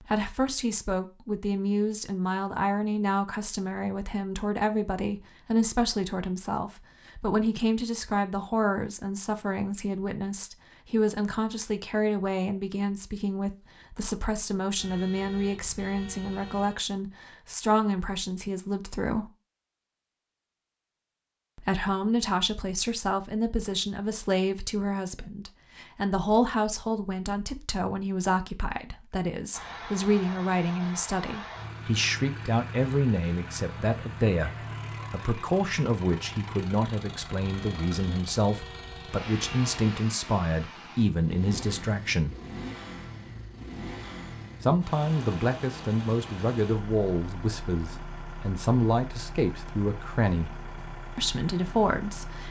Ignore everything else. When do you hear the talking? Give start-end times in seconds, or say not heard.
0.0-19.3, 21.6-42.4, 44.6-50.5, 51.1-52.4.